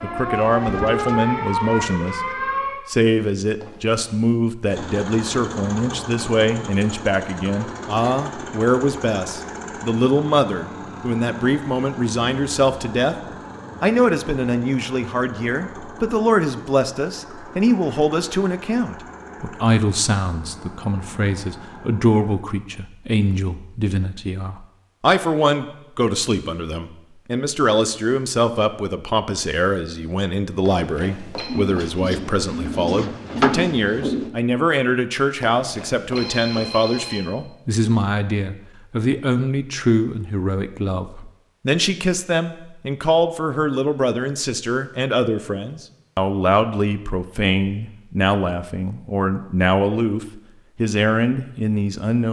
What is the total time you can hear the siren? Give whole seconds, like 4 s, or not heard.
3 s.